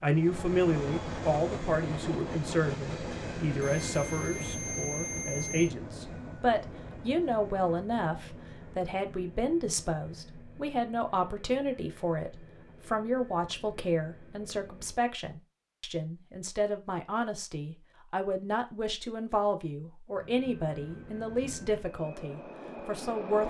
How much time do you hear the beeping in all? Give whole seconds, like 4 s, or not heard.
2 s.